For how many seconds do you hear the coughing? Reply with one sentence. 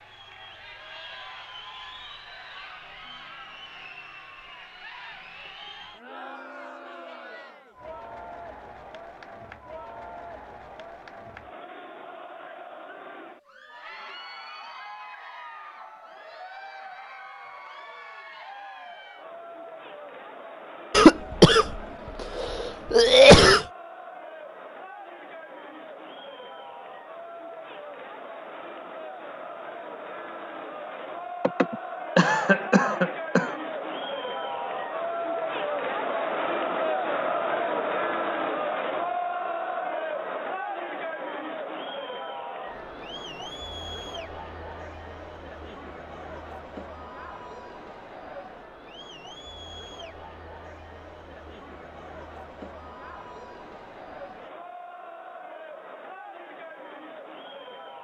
The coughing can be heard for 5 seconds in total.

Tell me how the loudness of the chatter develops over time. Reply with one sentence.
The volume of the chatter goes up, then down.